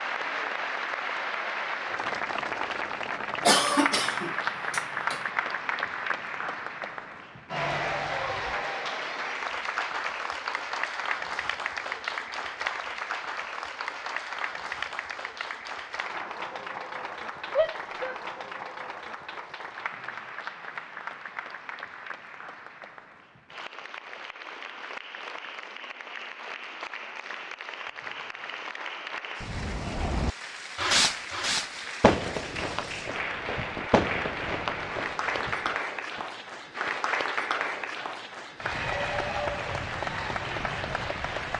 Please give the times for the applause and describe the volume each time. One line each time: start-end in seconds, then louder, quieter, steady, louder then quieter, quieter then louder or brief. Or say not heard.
0.0-41.5 quieter then louder.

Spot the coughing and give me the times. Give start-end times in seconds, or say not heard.
3.5-5.2.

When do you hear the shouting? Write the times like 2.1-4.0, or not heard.
17.6-18.2.